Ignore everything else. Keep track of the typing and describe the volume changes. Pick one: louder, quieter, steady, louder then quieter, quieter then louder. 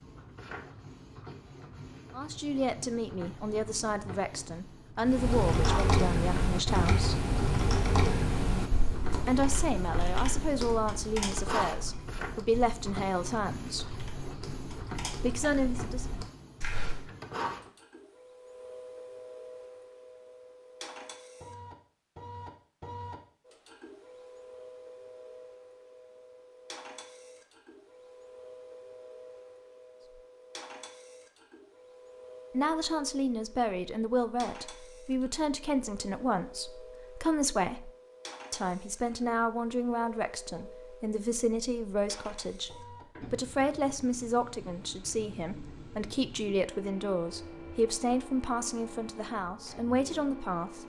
quieter.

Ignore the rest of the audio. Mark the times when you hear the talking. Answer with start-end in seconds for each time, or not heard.
2.1-7.2, 9.2-13.9, 15.2-16.1, 32.5-37.9, 38.5-50.8.